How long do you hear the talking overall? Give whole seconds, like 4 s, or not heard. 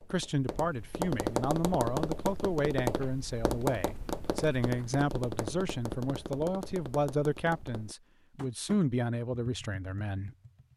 10 s.